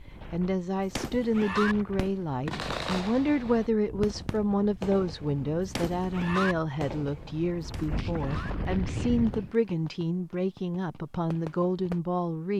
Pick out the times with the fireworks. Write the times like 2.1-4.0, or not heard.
0.9-12.0.